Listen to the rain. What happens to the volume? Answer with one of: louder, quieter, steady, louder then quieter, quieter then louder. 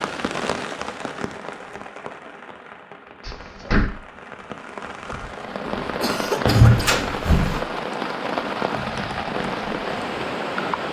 quieter then louder.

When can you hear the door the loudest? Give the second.
7 s.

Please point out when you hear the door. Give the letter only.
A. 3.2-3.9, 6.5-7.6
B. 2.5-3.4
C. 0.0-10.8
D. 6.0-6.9
A.